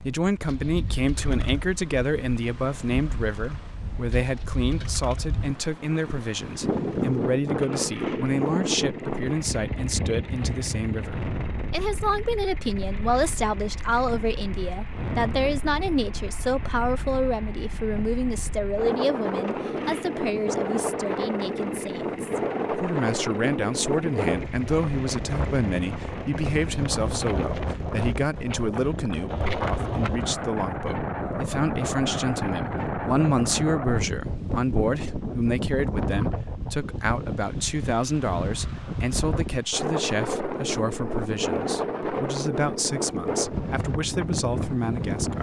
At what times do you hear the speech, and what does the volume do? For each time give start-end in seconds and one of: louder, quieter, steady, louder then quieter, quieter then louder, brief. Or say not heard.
0.0-45.3 steady.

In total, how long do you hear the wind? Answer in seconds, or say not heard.
45 s.